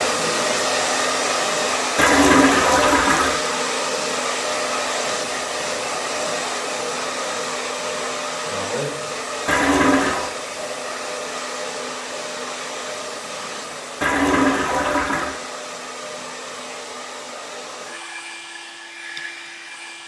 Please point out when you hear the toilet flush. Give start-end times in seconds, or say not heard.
1.9-3.4, 9.4-10.3, 14.0-15.3.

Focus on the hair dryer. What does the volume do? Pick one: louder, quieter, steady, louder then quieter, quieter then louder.
quieter.